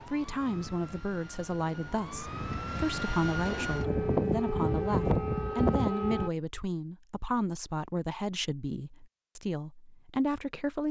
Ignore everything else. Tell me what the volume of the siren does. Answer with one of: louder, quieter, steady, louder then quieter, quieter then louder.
louder.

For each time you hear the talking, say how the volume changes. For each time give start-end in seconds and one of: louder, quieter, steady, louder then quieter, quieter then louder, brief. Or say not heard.
0.1-10.8 steady.